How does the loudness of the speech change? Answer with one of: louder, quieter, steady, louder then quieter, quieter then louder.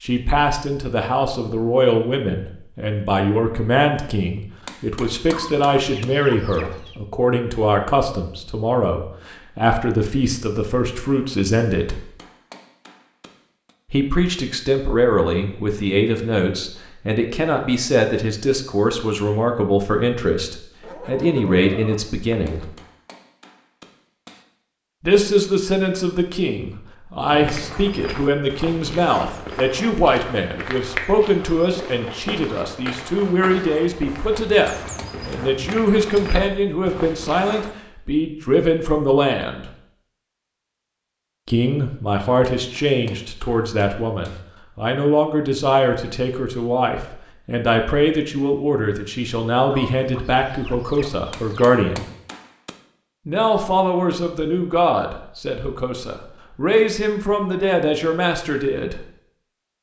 steady.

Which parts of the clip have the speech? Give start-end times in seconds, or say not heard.
0.0-12.0, 13.9-22.7, 25.0-39.7, 41.5-52.1, 53.2-59.0.